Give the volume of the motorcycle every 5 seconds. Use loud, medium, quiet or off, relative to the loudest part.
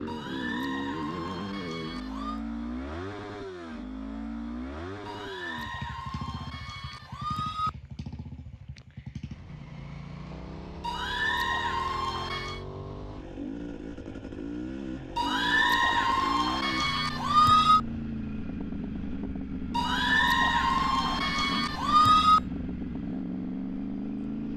loud, medium, medium, loud, loud.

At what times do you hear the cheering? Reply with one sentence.
You can hear the cheering from 0.1 to 2.4 s, from 5.0 to 7.7 s, from 10.8 to 12.6 s, from 15.2 to 17.8 s and from 19.8 to 22.4 s.